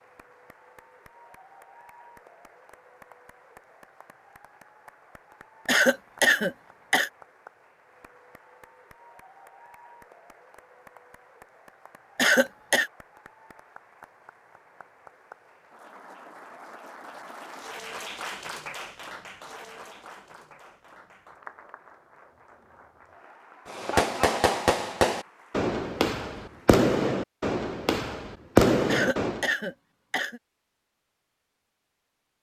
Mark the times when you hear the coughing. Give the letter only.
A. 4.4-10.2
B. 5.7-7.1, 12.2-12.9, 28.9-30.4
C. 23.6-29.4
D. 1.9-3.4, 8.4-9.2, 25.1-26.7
B.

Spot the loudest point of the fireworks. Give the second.
29 s.